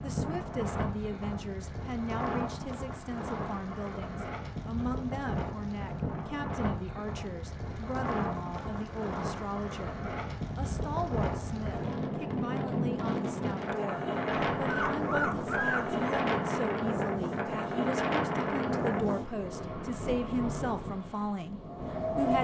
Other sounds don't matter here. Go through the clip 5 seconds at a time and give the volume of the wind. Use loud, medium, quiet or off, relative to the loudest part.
medium, medium, loud, loud, loud.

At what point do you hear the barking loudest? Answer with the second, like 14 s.
16 s.